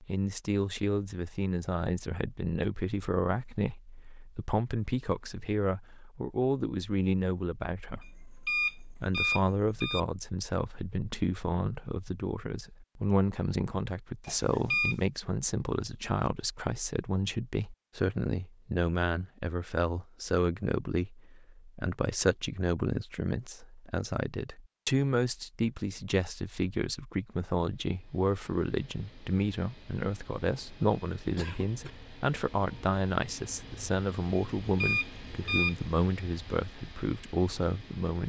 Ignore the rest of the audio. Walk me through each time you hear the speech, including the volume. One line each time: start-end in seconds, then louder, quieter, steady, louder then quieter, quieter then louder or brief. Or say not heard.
0.0-38.2 steady.